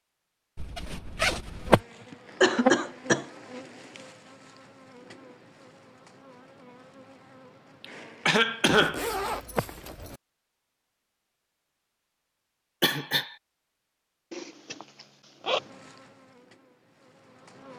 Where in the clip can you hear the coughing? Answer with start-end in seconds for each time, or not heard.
2.4-3.2, 7.8-9.1, 12.8-13.3.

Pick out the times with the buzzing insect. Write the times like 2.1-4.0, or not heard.
1.4-9.7, 15.4-17.7.